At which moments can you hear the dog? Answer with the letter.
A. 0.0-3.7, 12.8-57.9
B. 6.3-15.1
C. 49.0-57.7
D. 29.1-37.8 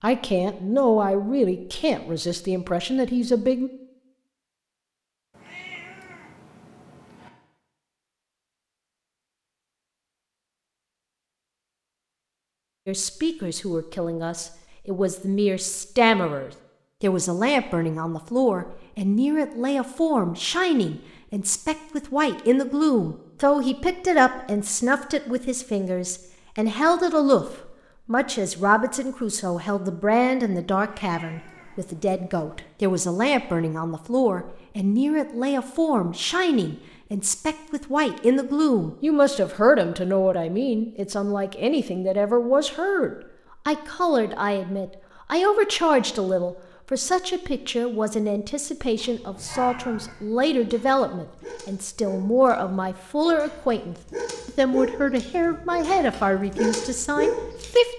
C.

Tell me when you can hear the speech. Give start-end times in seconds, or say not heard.
0.0-3.7, 12.8-57.9.